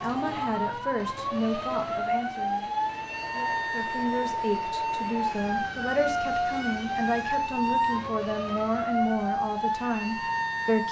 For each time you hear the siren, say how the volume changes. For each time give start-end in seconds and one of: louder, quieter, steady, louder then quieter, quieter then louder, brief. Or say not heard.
0.0-10.8 steady.